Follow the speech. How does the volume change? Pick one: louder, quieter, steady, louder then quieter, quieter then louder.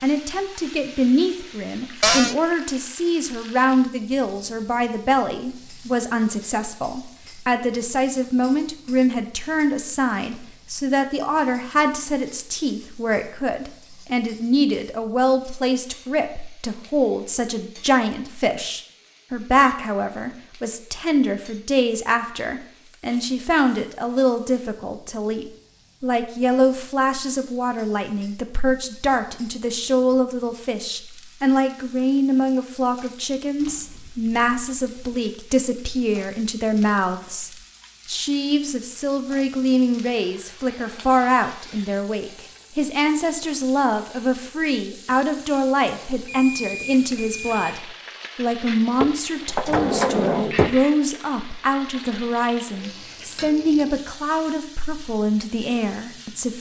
steady.